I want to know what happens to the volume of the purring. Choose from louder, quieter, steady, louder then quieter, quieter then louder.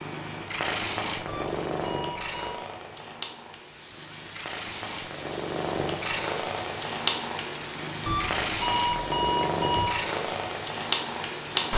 quieter then louder.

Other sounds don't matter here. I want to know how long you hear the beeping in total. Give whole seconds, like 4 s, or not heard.
3 s.